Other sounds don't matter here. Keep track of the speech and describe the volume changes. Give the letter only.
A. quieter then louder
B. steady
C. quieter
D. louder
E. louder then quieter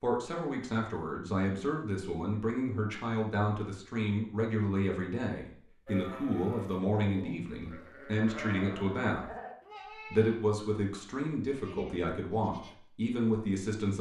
B.